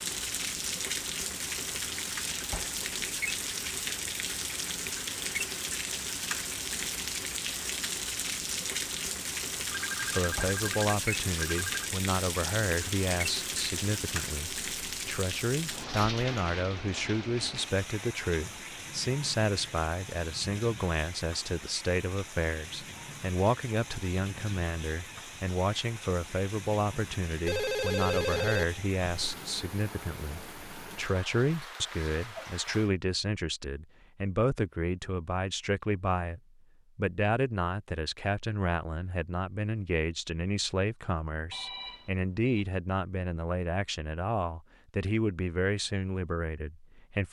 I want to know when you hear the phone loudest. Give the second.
28 s.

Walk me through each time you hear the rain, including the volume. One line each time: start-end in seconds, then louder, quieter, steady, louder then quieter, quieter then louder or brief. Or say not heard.
0.0-32.9 quieter.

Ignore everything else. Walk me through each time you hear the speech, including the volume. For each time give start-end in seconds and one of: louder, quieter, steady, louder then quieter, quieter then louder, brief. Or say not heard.
10.0-47.2 steady.